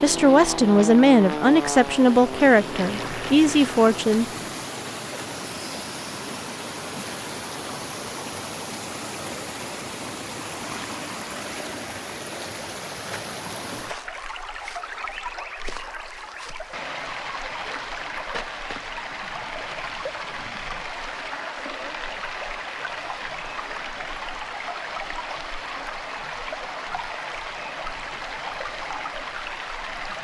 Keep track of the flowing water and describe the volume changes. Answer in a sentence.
The loudness of the flowing water stays about the same.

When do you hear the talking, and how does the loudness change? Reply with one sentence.
The talking can be heard from 0.0 to 4.2 s, at a steady volume.